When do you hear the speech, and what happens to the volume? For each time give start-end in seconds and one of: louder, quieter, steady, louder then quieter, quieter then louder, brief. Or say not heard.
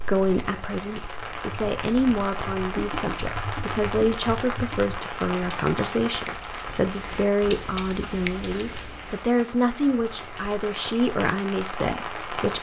0.0-12.5 steady.